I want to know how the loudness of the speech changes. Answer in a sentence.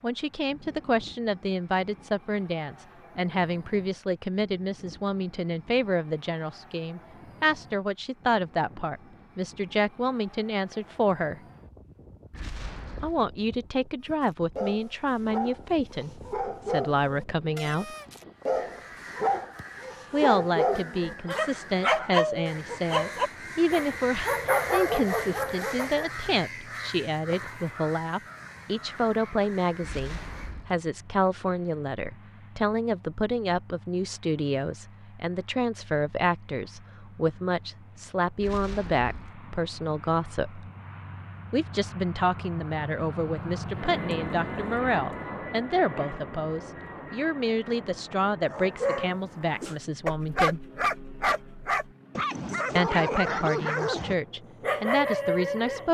The loudness of the speech stays about the same.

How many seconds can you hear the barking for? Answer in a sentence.
You can hear the barking for 19 seconds altogether.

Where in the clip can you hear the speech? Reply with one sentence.
You can hear the speech from 0.0 to 11.4 s, from 13.0 to 17.9 s, from 20.1 to 40.6 s, from 41.5 to 50.6 s and from 52.8 to 55.8 s.